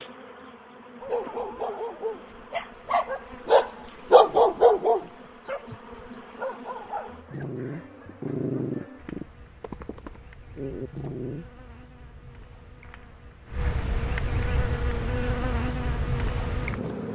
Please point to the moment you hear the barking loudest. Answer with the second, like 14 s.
4 s.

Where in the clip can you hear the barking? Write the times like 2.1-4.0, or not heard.
1.0-11.4.